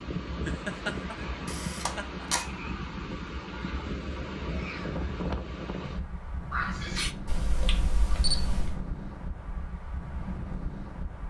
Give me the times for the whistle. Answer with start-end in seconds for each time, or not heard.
not heard.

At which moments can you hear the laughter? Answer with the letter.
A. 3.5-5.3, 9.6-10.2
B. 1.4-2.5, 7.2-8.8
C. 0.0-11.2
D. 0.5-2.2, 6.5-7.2
D.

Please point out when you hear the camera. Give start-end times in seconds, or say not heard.
1.4-2.5, 7.2-8.8.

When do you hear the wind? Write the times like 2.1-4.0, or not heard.
0.0-11.2.